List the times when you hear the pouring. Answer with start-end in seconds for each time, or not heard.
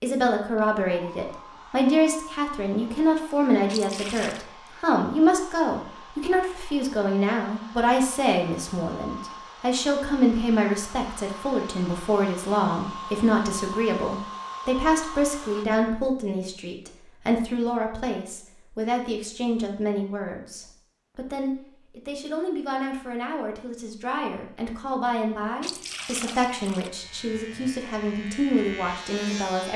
3.6-4.5, 25.6-26.9.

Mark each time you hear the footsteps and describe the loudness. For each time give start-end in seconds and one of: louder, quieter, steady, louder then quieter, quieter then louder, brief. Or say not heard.
not heard.